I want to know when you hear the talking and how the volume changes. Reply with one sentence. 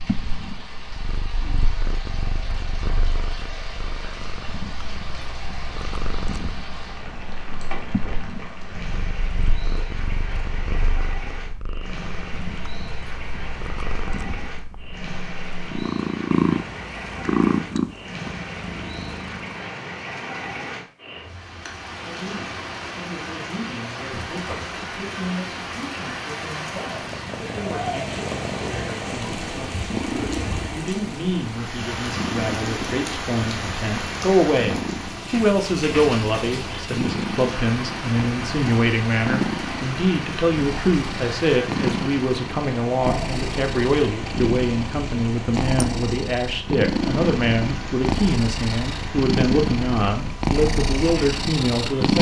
The talking can be heard from 22.0 to 52.1 s, getting louder.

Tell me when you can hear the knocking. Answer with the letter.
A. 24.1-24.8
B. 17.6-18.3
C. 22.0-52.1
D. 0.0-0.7
A.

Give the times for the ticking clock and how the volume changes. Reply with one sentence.
The ticking clock can't be heard in this clip.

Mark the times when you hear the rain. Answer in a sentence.
You can hear the rain from 0.0 to 52.1 s.